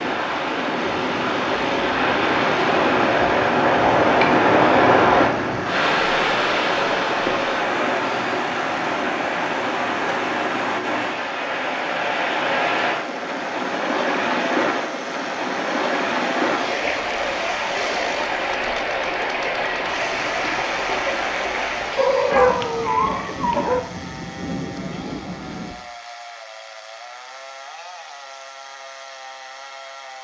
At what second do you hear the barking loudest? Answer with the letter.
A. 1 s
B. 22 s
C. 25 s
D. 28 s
B.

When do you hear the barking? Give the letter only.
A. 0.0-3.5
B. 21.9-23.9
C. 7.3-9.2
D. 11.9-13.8
B.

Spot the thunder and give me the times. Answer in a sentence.
You can hear the thunder from 22.3 to 25.8 s.